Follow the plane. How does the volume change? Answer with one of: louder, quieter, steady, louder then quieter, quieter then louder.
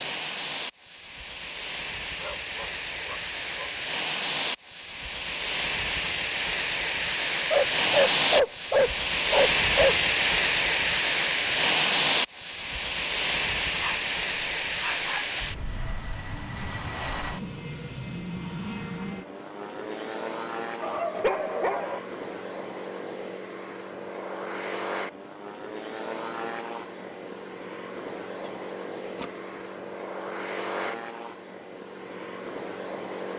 louder then quieter.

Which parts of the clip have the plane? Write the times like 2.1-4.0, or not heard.
0.0-33.3.